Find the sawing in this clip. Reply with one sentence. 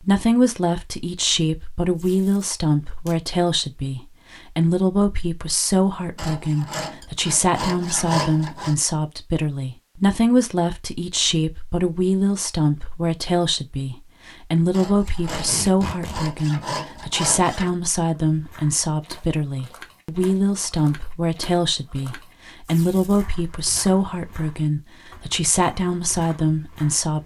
You can hear the sawing from 6.2 to 8.8 s and from 14.7 to 17.7 s.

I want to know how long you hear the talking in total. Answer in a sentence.
You can hear the talking for 27 seconds altogether.